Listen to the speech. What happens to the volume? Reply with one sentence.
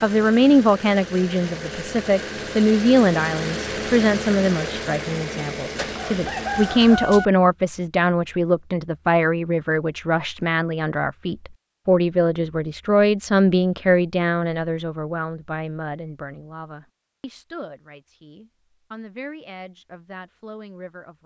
The volume of the speech goes down.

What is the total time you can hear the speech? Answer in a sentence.
You can hear the speech for 21 seconds altogether.